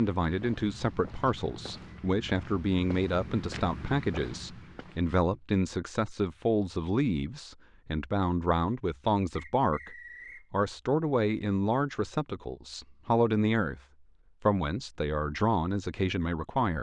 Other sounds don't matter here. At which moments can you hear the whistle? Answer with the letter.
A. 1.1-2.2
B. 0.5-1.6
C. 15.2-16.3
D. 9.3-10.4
D.